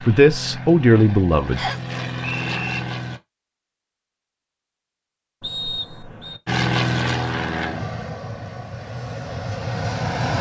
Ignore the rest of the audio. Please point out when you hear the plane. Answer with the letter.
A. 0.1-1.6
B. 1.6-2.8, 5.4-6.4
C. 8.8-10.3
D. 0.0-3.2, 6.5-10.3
D.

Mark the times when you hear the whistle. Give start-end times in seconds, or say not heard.
1.6-2.8, 5.4-6.4.